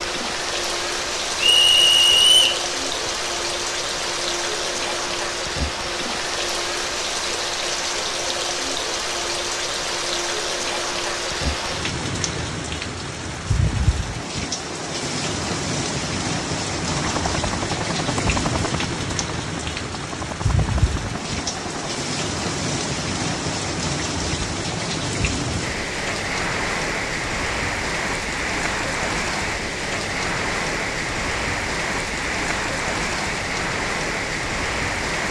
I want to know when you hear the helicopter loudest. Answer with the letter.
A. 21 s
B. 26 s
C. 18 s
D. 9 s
C.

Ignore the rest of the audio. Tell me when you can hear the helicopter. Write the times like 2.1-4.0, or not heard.
16.9-22.0.